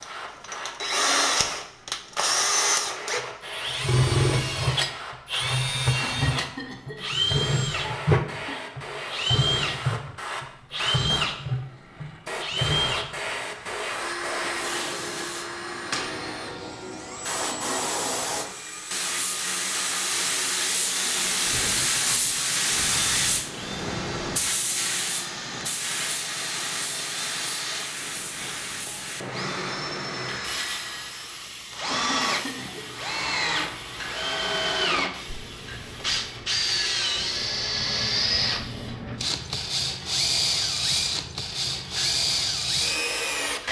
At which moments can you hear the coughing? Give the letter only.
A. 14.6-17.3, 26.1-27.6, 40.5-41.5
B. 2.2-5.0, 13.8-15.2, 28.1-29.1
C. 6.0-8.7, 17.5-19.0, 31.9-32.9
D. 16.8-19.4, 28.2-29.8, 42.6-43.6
C.